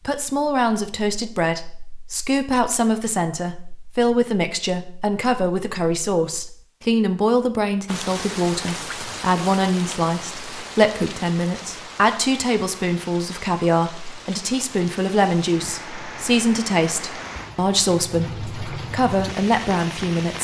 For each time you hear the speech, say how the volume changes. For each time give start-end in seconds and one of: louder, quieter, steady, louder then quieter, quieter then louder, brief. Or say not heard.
0.1-20.4 steady.